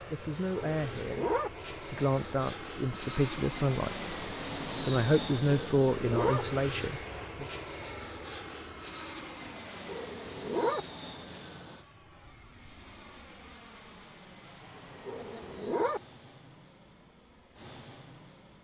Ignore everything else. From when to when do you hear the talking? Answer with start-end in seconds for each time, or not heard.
0.1-7.5.